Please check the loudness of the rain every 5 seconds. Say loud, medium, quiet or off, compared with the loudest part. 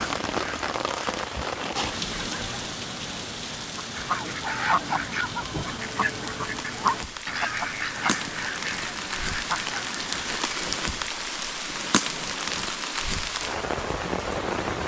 loud, medium, loud.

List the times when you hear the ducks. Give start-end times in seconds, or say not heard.
3.8-10.3.